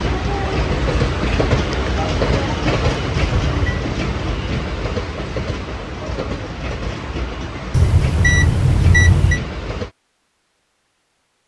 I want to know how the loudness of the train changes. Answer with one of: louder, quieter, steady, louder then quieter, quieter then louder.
quieter.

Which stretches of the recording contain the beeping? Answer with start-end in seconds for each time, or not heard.
3.1-3.9, 7.7-9.4.